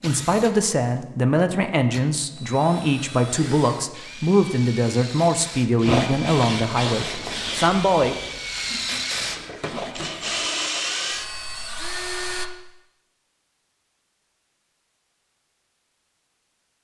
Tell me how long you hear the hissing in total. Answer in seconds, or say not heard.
5 s.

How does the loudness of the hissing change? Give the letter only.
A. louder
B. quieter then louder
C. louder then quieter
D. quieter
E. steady
B.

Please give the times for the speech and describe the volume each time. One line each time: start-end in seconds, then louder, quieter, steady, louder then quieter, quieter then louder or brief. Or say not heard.
0.0-8.2 steady.